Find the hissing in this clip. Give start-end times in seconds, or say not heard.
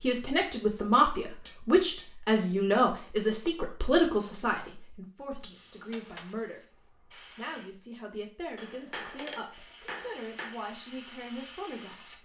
5.4-7.7, 9.5-12.1.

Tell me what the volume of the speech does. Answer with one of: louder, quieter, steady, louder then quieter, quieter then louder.
quieter.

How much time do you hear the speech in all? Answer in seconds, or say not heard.
12 s.